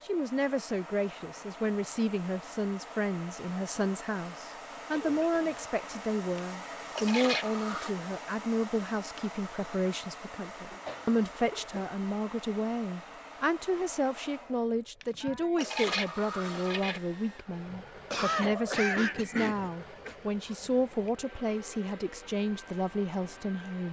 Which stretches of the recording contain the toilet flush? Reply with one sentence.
The toilet flush can be heard from 6.3 to 8.0 s and from 15.0 to 17.0 s.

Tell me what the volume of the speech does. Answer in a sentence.
The volume of the speech stays about the same.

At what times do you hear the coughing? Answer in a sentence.
The coughing can be heard from 4.9 to 5.6 s, from 10.8 to 12.0 s and from 18.1 to 20.1 s.